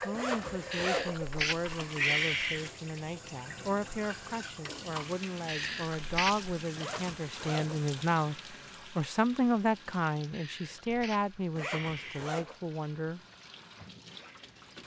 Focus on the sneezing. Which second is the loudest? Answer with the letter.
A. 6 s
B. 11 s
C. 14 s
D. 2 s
D.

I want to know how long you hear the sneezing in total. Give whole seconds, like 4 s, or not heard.
5 s.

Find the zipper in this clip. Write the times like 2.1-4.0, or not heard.
0.1-1.9, 6.8-7.9, 11.6-12.6.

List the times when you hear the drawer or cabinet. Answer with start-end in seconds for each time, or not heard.
not heard.